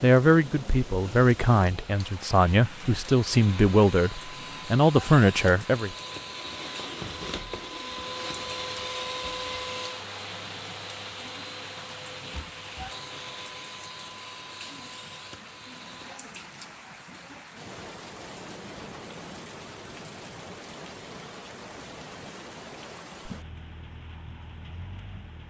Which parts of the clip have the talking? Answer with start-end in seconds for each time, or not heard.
0.0-6.0.